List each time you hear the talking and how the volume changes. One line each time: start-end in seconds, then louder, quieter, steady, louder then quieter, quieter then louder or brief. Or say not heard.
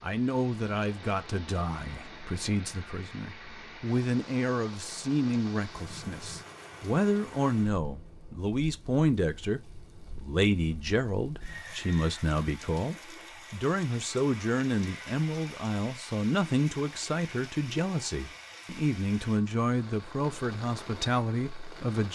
0.0-22.0 steady.